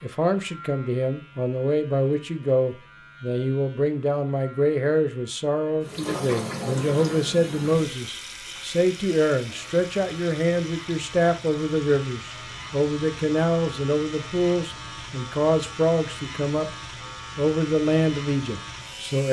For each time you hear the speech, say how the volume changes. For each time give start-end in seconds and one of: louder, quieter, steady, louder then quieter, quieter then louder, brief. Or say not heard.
0.0-16.7 steady
17.4-19.2 brief.